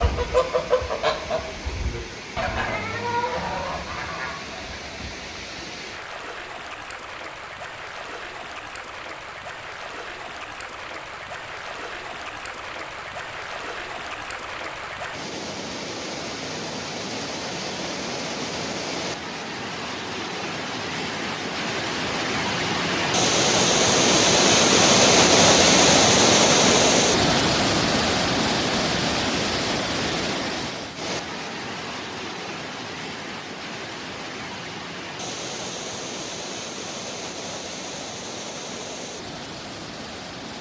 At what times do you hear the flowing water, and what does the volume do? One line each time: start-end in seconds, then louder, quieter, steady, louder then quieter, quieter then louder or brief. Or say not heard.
0.0-40.5 louder then quieter.